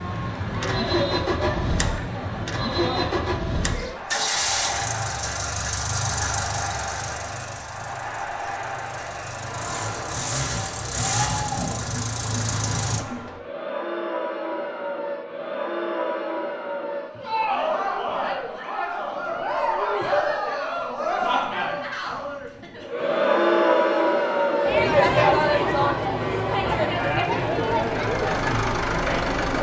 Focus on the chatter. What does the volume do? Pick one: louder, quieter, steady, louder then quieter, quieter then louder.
louder.